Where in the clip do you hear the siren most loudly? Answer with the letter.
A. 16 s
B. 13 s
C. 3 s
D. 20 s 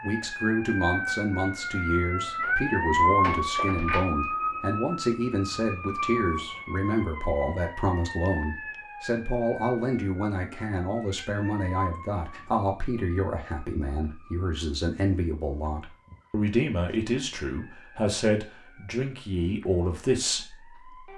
C.